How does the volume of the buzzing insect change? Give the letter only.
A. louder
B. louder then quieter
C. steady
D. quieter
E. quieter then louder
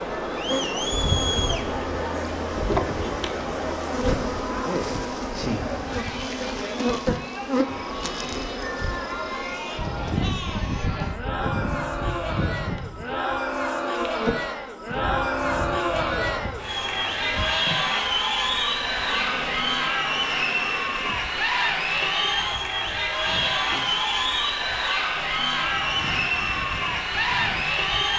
D.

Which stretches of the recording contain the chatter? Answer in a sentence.
You can hear the chatter from 0.0 to 28.1 s.